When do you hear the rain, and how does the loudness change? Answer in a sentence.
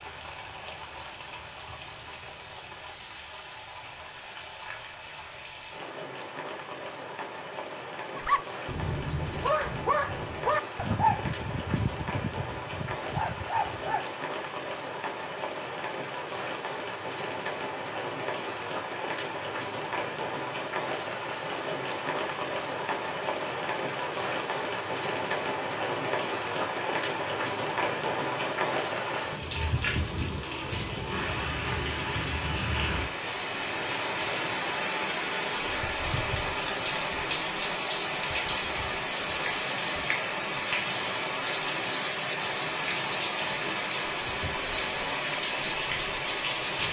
The rain can be heard from 0.0 to 46.8 s, getting louder.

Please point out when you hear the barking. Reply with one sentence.
You can hear the barking from 8.2 to 14.1 s.